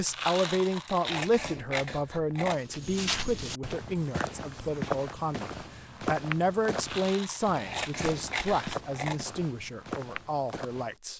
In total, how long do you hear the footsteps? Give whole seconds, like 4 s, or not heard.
8 s.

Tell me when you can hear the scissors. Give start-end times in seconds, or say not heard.
1.1-2.6, 7.7-9.2.